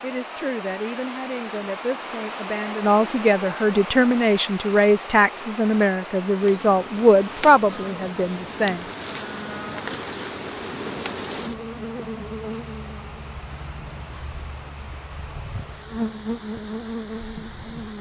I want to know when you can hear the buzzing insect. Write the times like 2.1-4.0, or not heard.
6.3-17.9.